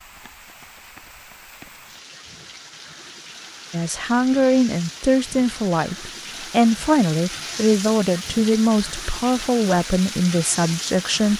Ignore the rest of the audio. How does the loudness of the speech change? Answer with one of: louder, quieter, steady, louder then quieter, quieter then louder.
steady.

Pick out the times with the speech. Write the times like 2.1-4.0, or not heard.
3.7-11.3.